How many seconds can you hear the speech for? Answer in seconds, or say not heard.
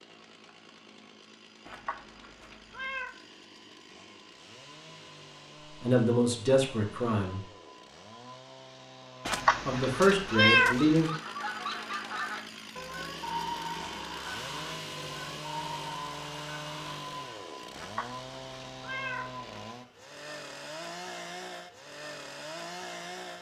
3 s.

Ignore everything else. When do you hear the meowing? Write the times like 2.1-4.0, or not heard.
1.6-3.1, 9.2-11.1, 17.8-19.4.